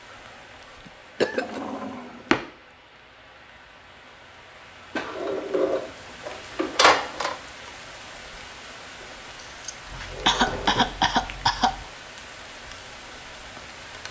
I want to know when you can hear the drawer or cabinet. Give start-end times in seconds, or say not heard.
1.3-2.5, 5.0-7.3, 9.9-11.8.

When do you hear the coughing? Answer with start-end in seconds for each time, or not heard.
0.8-1.6, 9.7-11.8.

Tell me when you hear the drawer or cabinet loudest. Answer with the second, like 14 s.
7 s.